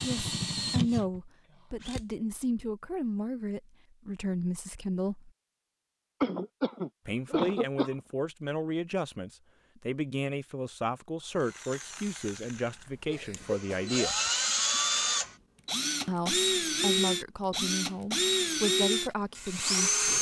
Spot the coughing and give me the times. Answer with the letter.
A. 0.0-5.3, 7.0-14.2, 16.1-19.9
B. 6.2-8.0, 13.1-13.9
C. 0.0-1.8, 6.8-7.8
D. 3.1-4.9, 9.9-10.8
B.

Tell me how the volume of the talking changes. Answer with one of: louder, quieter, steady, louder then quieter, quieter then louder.
steady.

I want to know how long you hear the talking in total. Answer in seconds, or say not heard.
16 s.